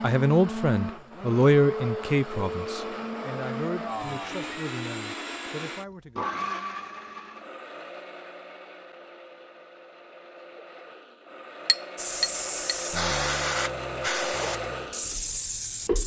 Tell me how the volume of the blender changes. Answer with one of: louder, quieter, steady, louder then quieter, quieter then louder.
quieter then louder.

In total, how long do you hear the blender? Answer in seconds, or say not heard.
16 s.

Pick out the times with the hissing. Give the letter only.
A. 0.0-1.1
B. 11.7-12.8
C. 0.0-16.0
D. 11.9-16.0
D.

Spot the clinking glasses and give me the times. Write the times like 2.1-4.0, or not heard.
11.7-12.8.